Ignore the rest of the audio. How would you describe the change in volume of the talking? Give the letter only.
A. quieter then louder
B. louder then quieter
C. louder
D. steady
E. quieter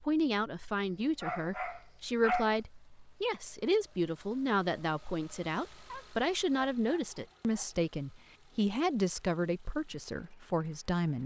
D.